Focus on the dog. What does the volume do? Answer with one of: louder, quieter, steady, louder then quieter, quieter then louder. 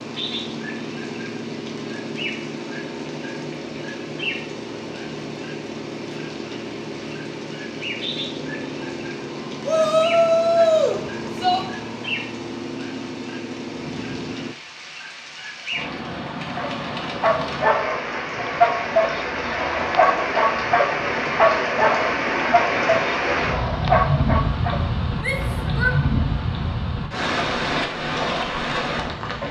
steady.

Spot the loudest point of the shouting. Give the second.
11 s.